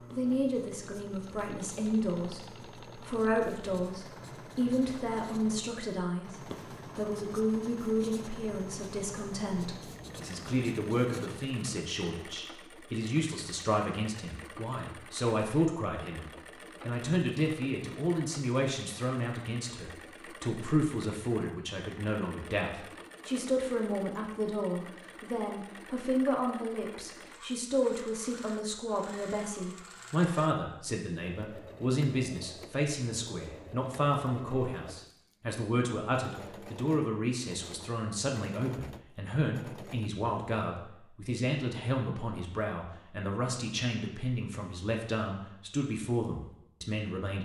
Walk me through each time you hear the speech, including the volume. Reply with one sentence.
The speech can be heard from 0.0 to 47.3 s, at a steady volume.